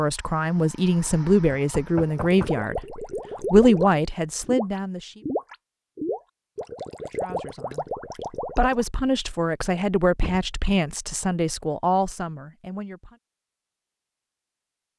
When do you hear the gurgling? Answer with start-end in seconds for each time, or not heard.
2.1-8.9.